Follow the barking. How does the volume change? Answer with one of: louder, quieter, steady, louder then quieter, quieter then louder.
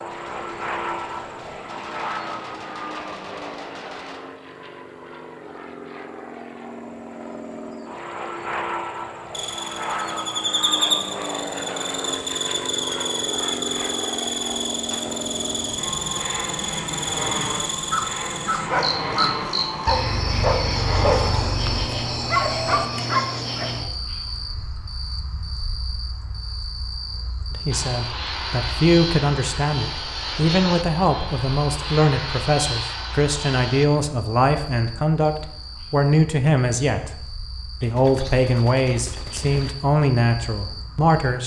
steady.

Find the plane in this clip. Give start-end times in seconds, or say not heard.
0.0-22.9, 27.7-33.9.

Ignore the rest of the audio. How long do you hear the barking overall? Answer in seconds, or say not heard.
6 s.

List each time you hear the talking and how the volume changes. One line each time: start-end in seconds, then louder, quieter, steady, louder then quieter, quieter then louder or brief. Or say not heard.
27.5-41.4 steady.